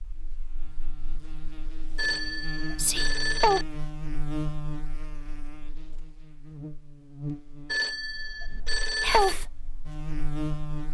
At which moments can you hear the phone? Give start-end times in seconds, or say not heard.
1.9-3.6, 7.7-9.3.